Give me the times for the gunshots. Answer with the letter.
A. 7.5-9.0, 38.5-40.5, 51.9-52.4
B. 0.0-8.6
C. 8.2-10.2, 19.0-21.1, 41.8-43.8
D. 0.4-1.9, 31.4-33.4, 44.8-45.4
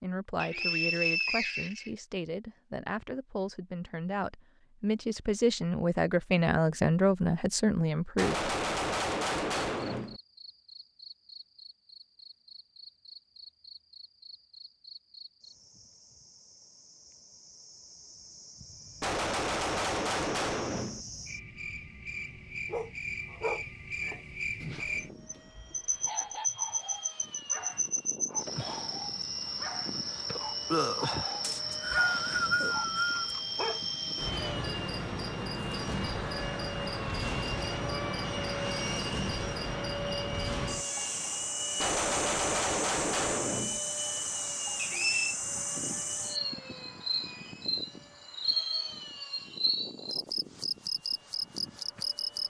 C.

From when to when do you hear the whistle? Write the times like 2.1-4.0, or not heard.
0.4-1.9, 31.4-33.4, 44.8-45.4.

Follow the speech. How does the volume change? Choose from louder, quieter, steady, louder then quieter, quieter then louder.
louder.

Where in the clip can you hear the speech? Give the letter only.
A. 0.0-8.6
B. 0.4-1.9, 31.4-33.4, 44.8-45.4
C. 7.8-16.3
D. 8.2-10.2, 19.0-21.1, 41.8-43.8
A.